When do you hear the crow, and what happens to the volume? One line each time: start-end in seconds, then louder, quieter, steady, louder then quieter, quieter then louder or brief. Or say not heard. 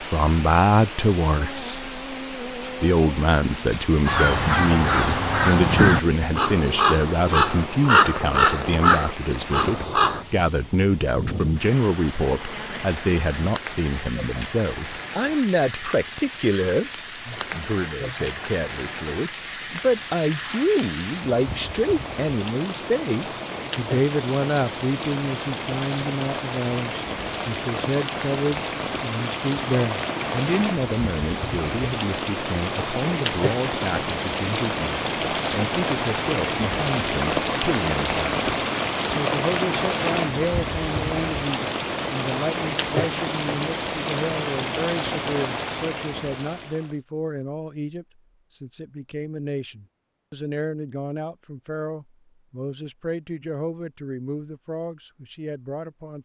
4.0-10.2 steady.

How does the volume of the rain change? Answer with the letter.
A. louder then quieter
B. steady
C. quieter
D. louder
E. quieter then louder
D.